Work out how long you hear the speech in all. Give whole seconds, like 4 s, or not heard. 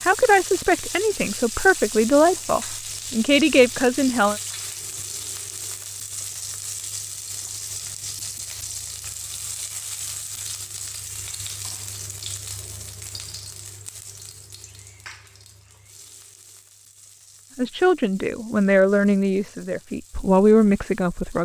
8 s.